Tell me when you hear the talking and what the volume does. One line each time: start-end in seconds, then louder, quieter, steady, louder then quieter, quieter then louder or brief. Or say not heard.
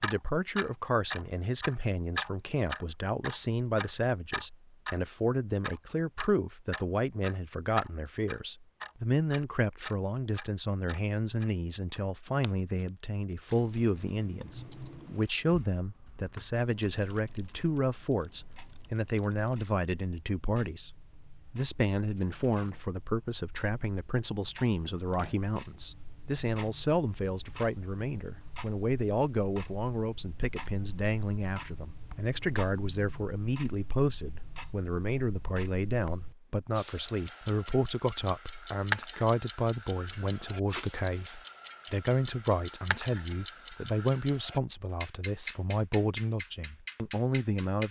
0.0-47.8 steady.